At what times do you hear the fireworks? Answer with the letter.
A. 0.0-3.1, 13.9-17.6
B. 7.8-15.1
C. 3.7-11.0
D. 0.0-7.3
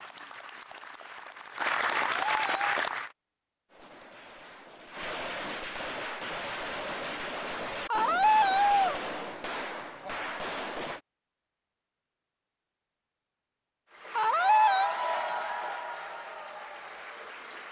C.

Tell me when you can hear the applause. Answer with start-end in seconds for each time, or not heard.
0.0-3.1, 13.9-17.6.